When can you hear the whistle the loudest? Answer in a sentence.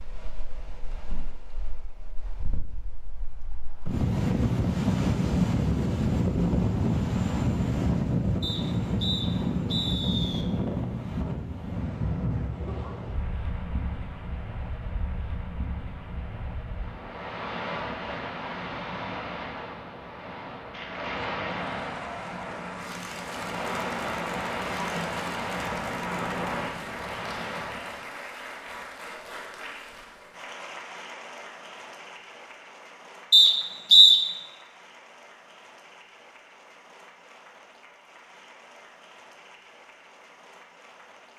The volume of the whistle peaks at 34 seconds.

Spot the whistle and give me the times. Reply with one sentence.
You can hear the whistle from 8.4 to 10.4 s and from 33.3 to 34.1 s.